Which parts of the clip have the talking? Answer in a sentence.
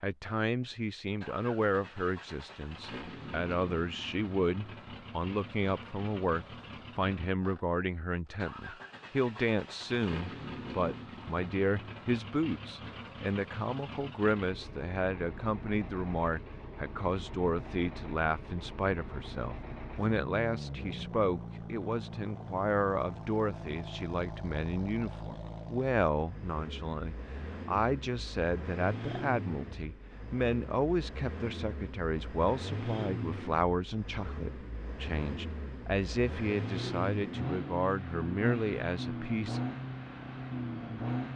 You can hear the talking from 0.0 to 39.6 s.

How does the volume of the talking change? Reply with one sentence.
The loudness of the talking stays about the same.